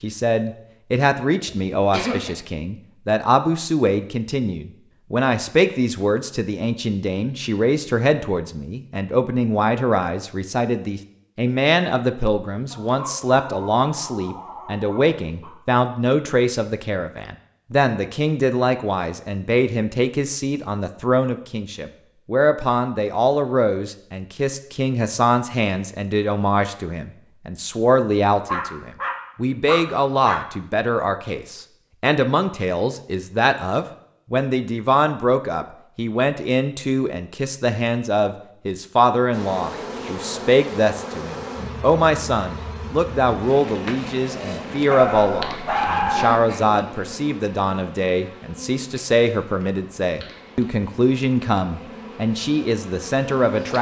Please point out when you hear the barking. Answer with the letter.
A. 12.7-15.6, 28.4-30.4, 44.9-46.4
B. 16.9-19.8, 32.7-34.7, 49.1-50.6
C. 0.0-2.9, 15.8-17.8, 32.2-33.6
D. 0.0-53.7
A.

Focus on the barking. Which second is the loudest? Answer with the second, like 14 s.
46 s.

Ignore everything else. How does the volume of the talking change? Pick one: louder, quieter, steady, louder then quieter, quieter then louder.
steady.